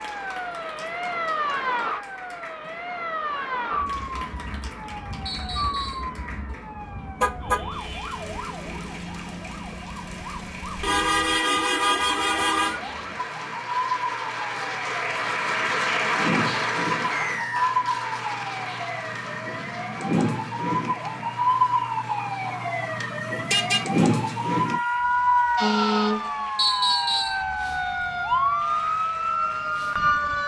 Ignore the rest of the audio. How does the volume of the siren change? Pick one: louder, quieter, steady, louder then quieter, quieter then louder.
quieter then louder.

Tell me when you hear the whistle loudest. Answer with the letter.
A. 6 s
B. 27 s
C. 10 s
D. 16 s
B.